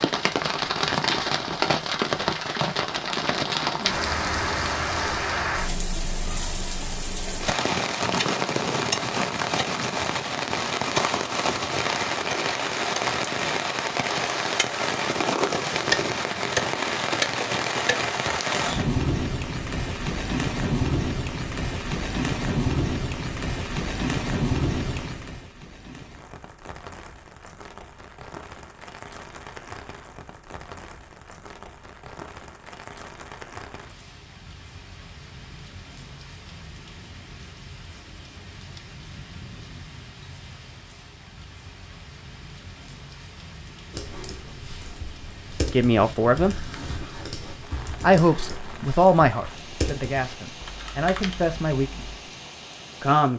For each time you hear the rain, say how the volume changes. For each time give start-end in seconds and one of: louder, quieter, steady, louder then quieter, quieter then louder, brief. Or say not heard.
0.0-53.3 quieter.